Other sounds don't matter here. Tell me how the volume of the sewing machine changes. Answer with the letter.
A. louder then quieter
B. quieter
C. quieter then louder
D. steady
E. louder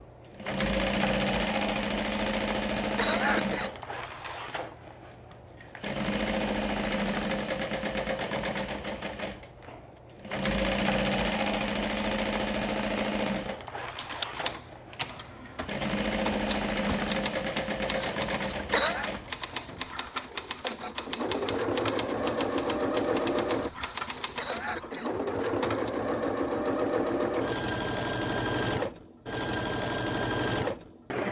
D.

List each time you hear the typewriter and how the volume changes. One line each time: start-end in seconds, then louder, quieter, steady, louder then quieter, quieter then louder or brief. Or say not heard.
13.9-25.9 steady.